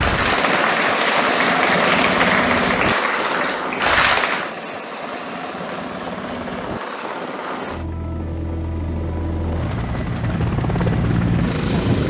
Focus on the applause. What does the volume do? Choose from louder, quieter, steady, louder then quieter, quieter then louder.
steady.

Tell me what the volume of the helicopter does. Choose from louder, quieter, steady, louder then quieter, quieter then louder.
quieter then louder.